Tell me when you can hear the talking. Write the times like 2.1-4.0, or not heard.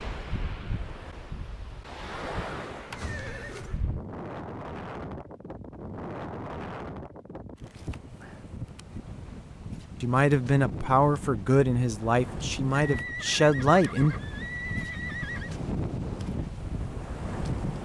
10.0-14.2.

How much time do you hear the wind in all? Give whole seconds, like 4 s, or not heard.
18 s.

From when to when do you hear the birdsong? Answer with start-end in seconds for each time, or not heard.
not heard.